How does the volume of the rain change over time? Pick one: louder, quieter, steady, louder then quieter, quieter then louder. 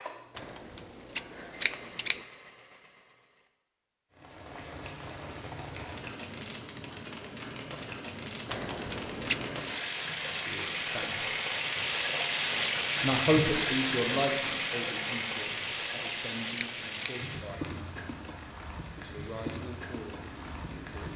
louder then quieter.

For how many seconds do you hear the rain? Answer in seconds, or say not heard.
17 s.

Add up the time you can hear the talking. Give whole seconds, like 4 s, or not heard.
8 s.